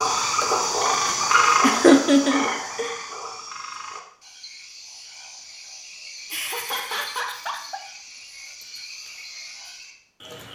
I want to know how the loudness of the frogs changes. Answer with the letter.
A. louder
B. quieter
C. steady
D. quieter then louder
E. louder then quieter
B.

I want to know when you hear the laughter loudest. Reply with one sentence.
The volume of the laughter peaks at 2 seconds.